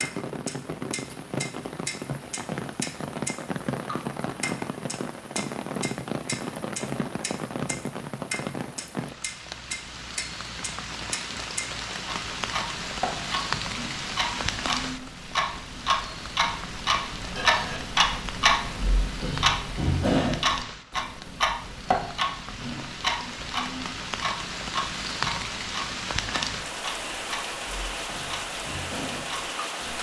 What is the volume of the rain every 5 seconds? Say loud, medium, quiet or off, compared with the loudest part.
loud, loud, loud, medium, medium, loud.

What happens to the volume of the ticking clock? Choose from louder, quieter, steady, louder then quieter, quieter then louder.
louder then quieter.